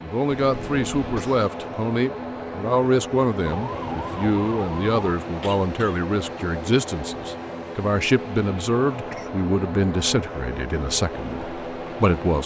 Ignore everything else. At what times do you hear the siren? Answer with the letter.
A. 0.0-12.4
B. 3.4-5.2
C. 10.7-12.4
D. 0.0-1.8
B.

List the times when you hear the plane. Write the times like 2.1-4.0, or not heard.
0.0-12.4.